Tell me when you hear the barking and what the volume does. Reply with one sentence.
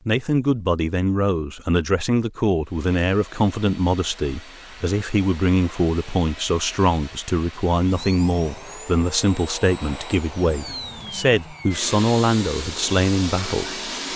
You can't hear the barking here.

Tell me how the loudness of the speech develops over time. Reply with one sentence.
The loudness of the speech stays about the same.